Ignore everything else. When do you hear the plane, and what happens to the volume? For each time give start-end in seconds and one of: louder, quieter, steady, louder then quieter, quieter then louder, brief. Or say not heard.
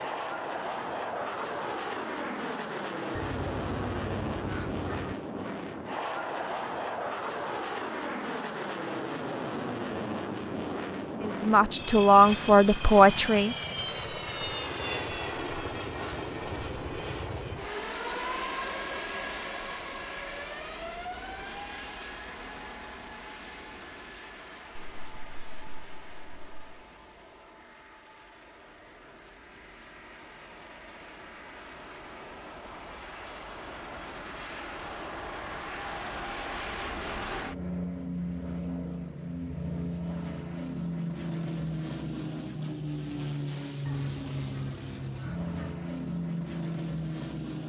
0.0-47.6 quieter then louder.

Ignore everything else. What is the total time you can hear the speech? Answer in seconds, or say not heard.
2 s.